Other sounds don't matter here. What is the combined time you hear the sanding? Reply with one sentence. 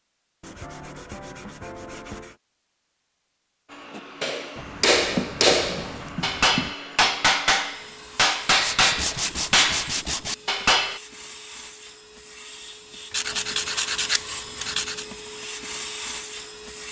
You can hear the sanding for 8 seconds altogether.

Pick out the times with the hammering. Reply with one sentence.
The hammering can be heard from 4.0 to 11.0 s.